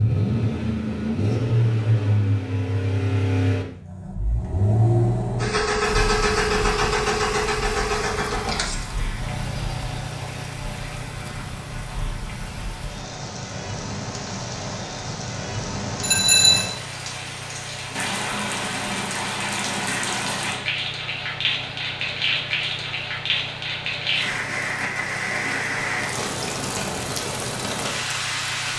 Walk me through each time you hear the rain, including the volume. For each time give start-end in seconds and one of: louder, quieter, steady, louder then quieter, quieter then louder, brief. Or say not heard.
5.8-28.7 louder.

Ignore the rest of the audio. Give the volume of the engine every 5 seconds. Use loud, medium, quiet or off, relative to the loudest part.
loud, loud, quiet, quiet, quiet, quiet.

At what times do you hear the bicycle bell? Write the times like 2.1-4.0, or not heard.
16.0-16.6.